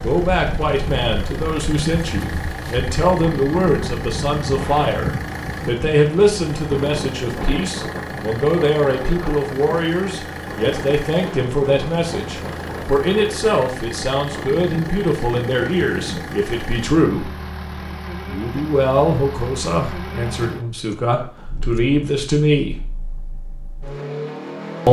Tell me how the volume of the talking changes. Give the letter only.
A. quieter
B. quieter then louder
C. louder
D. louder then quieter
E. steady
E.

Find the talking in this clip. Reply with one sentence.
The talking can be heard from 0.0 to 17.3 s and from 18.2 to 22.8 s.